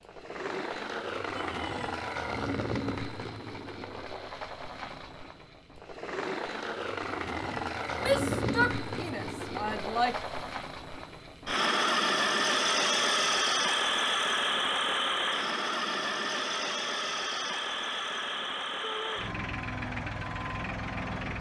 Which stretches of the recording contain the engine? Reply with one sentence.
You can hear the engine from 0.0 to 21.3 s.